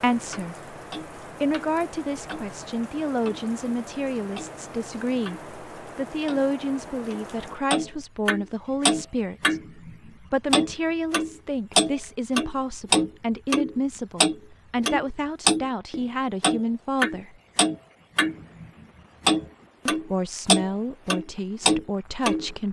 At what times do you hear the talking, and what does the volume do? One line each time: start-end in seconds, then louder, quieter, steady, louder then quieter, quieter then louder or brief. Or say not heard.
0.0-17.4 steady
19.9-22.6 brief.